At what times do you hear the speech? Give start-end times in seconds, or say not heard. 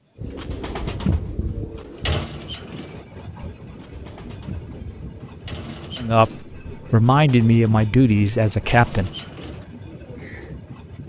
6.0-9.1.